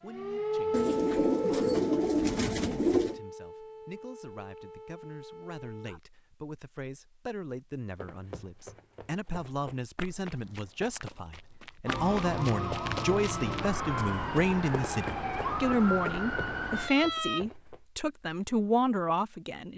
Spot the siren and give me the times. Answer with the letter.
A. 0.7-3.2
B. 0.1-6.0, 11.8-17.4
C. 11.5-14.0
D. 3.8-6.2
B.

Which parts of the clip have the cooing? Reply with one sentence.
You can hear the cooing from 0.7 to 3.2 s.